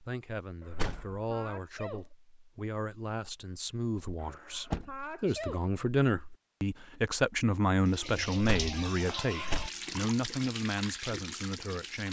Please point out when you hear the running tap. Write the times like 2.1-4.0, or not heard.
7.8-12.0.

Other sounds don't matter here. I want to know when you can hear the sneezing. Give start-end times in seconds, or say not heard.
0.6-2.1, 4.2-5.7, 9.0-9.4.